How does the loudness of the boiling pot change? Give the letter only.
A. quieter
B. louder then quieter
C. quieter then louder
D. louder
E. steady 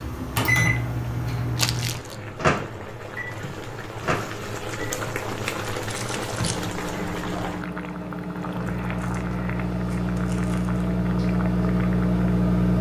B.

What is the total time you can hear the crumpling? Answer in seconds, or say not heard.
4 s.